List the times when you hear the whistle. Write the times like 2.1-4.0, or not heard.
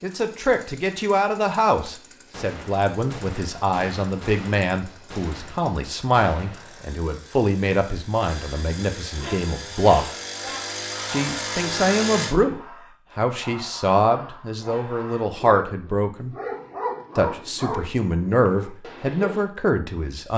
not heard.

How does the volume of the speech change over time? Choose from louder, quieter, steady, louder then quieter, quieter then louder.
steady.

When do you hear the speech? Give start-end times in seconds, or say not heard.
0.0-10.1, 11.1-16.4, 17.1-20.3.